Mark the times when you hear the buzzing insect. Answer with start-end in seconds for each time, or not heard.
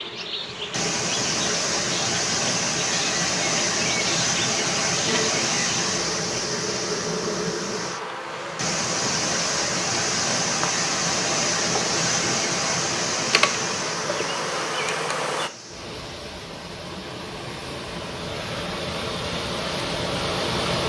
0.0-15.5.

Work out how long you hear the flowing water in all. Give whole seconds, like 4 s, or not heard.
21 s.